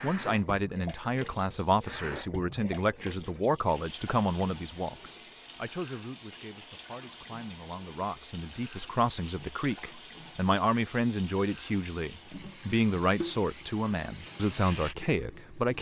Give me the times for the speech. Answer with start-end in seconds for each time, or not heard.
0.0-15.7.